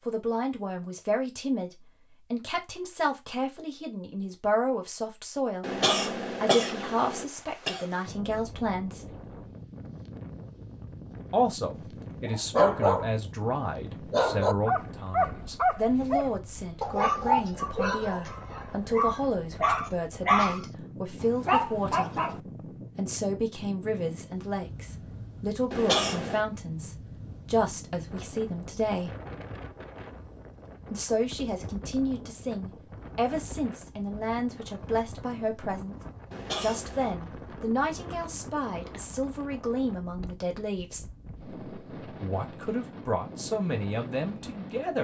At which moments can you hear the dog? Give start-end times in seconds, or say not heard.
11.8-13.3, 14.1-22.4.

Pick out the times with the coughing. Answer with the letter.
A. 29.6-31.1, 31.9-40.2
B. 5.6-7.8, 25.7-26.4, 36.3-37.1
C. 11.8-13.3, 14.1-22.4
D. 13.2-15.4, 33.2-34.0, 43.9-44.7
B.